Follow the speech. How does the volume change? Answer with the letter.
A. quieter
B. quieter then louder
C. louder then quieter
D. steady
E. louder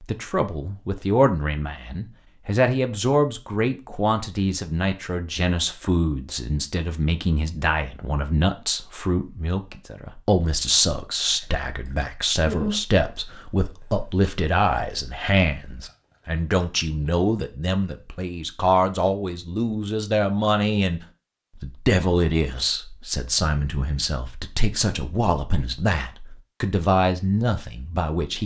D.